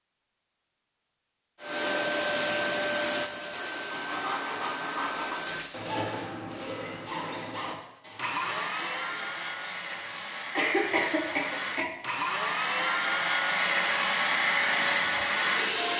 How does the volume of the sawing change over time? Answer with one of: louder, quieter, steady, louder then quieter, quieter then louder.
quieter.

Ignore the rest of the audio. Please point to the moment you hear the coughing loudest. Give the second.
11 s.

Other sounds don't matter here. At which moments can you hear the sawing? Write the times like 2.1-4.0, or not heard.
3.9-10.6.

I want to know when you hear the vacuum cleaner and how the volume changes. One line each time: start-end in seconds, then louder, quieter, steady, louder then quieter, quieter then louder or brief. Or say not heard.
1.6-5.9 quieter
8.2-15.9 louder.